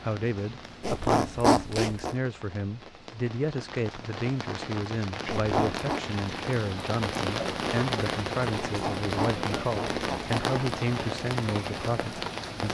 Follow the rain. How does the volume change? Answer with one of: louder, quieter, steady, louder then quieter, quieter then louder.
louder.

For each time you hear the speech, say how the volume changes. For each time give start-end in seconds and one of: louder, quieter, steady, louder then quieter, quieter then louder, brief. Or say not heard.
0.0-12.6 steady.